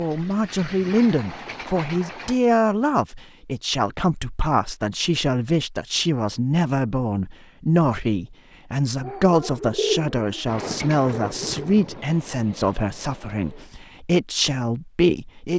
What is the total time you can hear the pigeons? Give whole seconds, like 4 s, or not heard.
3 s.